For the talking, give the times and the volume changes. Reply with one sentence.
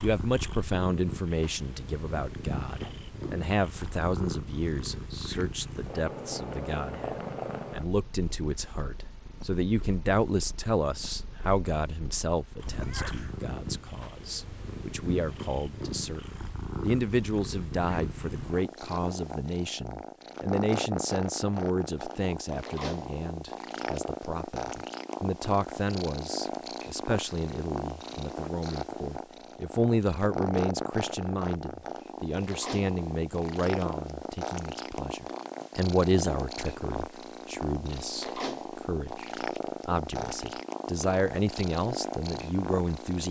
The talking can be heard from 0.0 to 43.2 s, at a steady volume.